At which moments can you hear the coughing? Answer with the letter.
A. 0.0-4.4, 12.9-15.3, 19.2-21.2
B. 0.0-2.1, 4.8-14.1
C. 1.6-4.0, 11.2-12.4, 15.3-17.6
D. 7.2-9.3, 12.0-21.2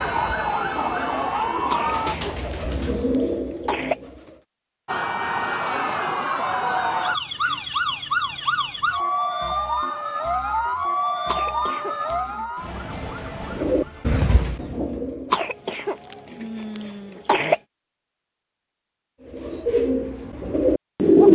C.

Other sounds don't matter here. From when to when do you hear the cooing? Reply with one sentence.
You can hear the cooing from 0.0 to 4.4 s, from 12.9 to 15.3 s and from 19.2 to 21.2 s.